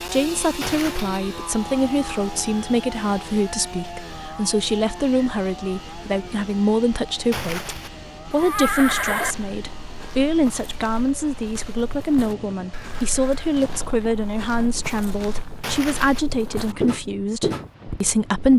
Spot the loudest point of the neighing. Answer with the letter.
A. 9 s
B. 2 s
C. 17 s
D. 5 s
A.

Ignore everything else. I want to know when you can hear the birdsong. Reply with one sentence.
The birdsong can't be heard in this clip.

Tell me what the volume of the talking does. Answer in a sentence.
The loudness of the talking stays about the same.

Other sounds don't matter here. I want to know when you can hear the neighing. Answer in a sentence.
The neighing can be heard from 0.6 to 1.2 s, from 7.3 to 9.3 s and from 15.6 to 16.2 s.